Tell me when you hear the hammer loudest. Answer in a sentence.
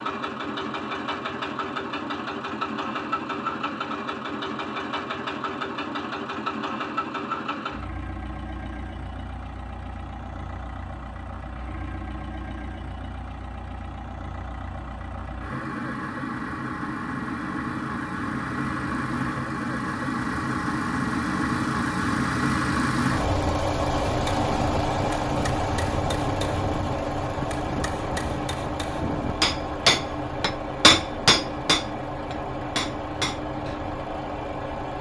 The loudest moment of the hammer is at 31 seconds.